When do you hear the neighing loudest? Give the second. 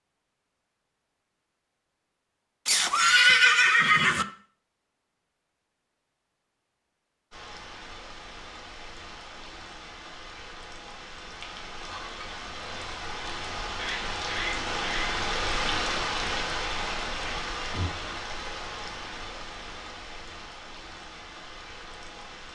3 s.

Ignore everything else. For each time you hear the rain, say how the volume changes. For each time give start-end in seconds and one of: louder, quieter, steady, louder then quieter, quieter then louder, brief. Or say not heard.
7.3-22.5 louder then quieter.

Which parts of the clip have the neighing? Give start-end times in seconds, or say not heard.
2.6-4.2, 13.8-15.1.